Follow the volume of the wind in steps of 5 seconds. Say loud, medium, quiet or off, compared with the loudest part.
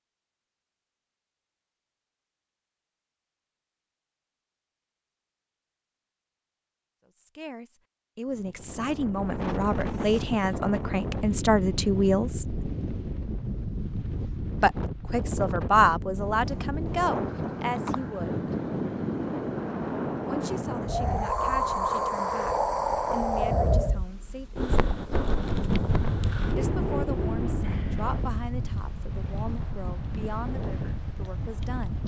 off, medium, medium, loud, loud, loud, medium.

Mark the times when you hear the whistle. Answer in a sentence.
You can't hear the whistle here.